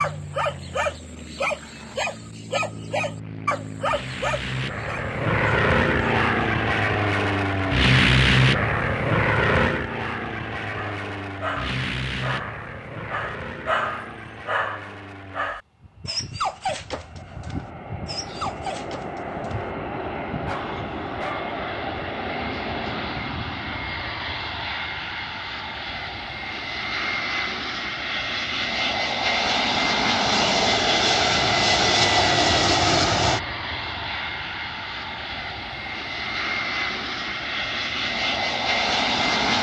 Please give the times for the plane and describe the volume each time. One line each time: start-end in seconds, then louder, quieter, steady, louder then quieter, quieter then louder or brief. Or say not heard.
0.0-39.5 quieter then louder.